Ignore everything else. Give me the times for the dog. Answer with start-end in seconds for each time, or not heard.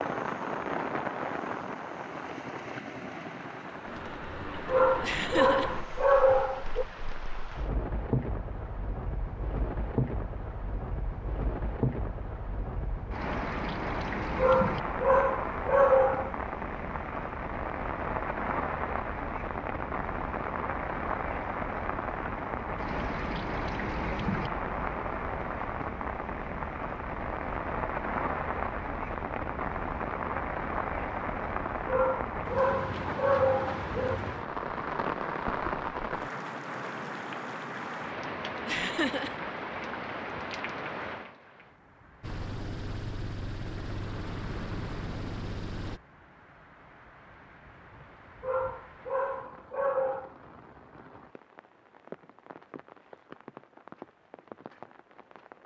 4.2-6.8, 13.9-16.3, 31.4-34.2, 48.0-50.4.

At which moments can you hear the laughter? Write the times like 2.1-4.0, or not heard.
5.0-5.7, 38.6-39.4.